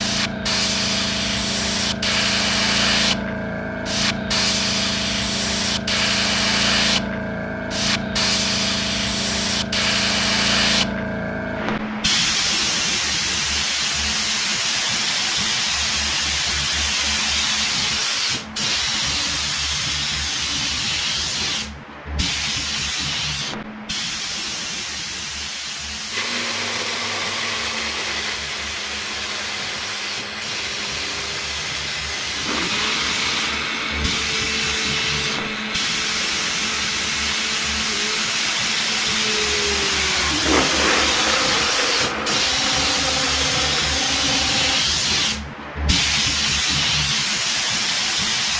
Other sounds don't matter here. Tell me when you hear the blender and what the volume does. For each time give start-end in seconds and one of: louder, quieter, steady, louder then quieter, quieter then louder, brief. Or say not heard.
26.1-44.9 steady.